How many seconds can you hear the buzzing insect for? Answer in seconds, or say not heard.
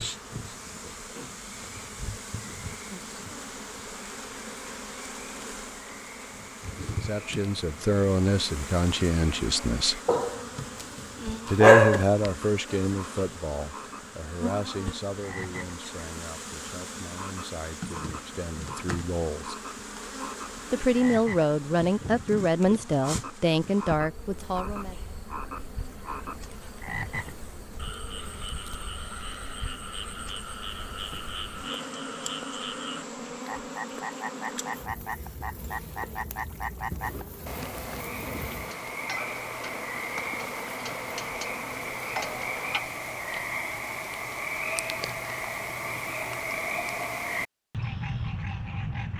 43 s.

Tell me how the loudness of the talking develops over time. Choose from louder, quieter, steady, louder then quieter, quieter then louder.
quieter then louder.